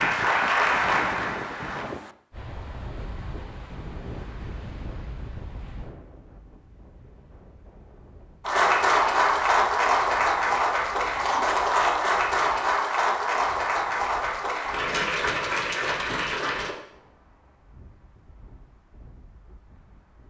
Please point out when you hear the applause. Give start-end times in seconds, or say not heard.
0.0-1.9, 8.4-16.8.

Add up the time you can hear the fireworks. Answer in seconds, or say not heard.
not heard.